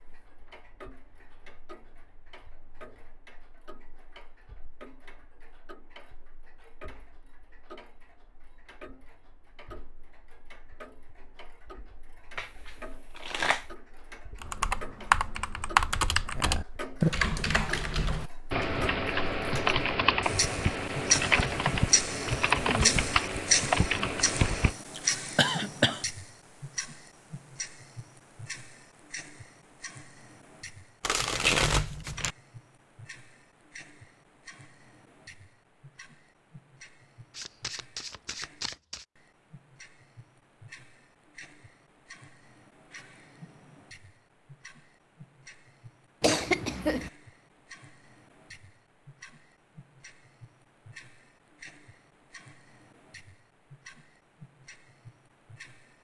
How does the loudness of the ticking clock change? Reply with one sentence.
The volume of the ticking clock goes up, then down.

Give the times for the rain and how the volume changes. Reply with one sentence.
You can't hear the rain here.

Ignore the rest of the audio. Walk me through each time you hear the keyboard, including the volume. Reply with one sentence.
You can hear the keyboard from 14.4 to 24.8 s, at a steady volume.